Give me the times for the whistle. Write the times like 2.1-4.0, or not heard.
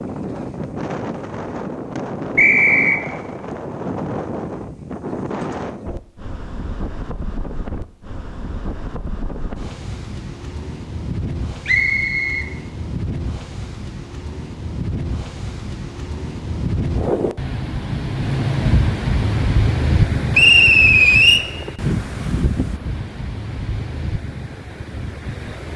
2.4-3.0, 11.7-12.5, 20.3-21.4.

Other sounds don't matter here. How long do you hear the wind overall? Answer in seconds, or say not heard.
26 s.